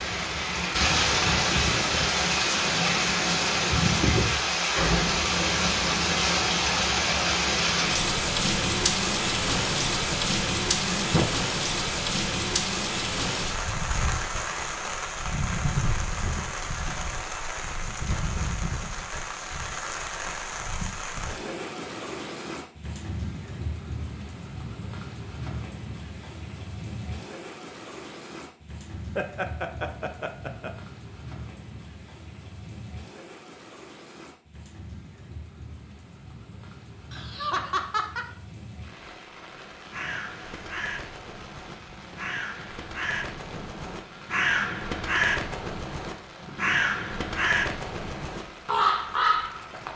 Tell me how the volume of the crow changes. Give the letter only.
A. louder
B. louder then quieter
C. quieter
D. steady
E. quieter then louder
A.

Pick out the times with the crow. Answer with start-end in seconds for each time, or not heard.
39.9-49.9.